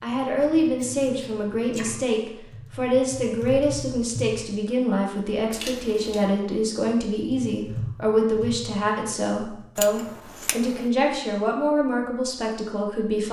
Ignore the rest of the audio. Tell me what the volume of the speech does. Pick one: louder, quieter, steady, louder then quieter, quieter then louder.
steady.